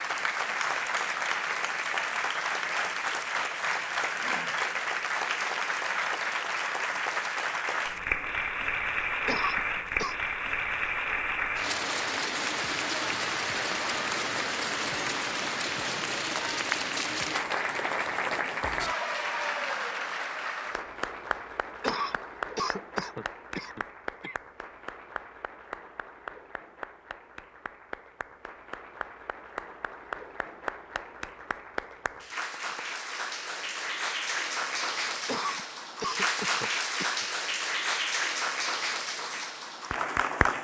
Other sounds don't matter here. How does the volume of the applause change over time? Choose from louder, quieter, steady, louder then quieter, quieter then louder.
quieter then louder.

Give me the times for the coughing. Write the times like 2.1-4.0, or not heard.
9.2-10.2, 21.8-24.4, 35.2-37.2.